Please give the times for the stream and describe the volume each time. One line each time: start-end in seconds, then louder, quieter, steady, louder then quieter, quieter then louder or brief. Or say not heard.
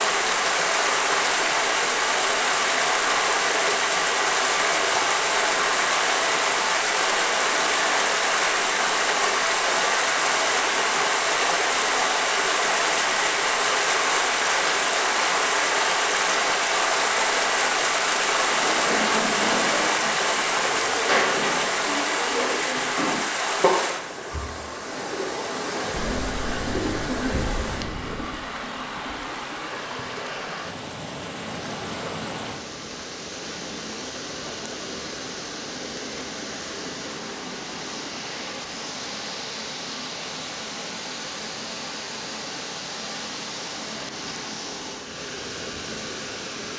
0.0-46.7 quieter.